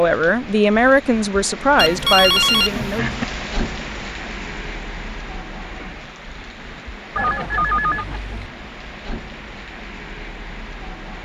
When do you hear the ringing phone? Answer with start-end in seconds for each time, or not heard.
1.8-3.2, 7.2-8.5.